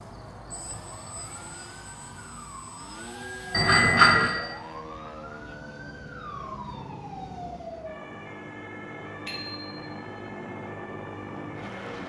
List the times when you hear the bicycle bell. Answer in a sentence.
The bicycle bell can be heard from 3.5 to 4.3 s and from 9.2 to 9.8 s.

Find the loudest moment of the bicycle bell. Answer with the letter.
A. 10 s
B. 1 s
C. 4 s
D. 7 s
C.